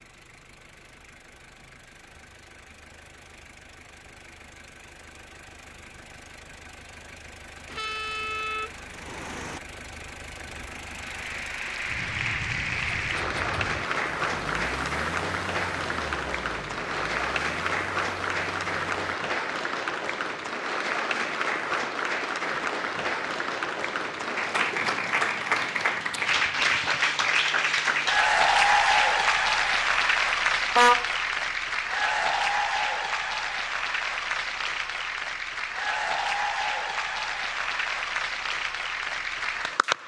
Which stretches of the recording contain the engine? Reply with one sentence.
You can hear the engine from 0.0 to 19.1 s.